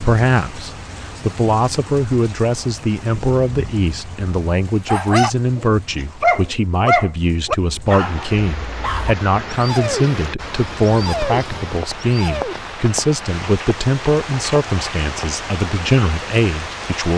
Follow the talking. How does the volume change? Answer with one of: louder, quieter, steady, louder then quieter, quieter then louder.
steady.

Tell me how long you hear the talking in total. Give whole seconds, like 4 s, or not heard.
17 s.